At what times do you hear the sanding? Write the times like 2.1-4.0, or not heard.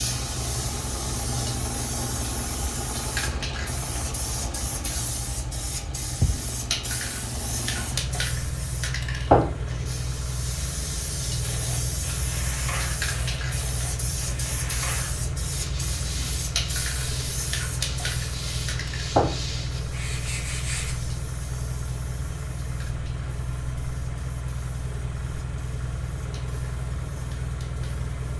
11.4-20.9.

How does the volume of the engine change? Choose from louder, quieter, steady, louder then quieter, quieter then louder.
steady.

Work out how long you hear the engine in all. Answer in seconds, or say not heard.
28 s.